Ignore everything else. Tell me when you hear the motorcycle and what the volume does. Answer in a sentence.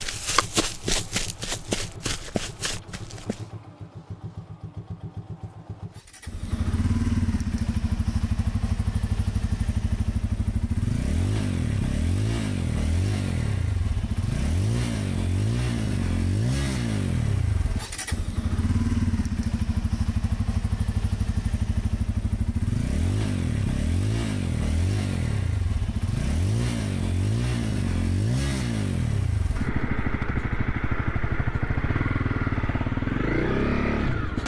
The motorcycle can be heard from 0.0 to 34.4 s, getting louder.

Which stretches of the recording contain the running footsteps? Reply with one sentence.
You can hear the running footsteps from 0.0 to 3.5 s.